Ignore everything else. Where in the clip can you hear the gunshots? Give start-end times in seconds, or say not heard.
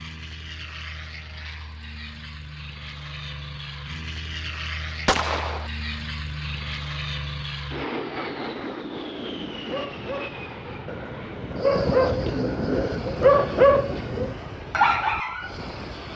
5.0-5.7.